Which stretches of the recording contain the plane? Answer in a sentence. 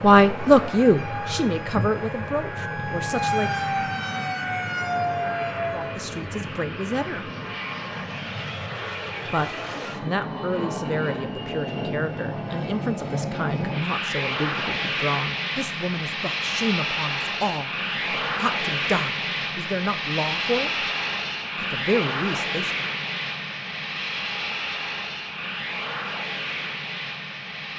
The plane can be heard from 0.0 to 27.7 s.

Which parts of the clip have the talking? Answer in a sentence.
You can hear the talking from 0.0 to 3.6 s, from 5.7 to 7.3 s, from 9.2 to 20.9 s and from 21.6 to 22.9 s.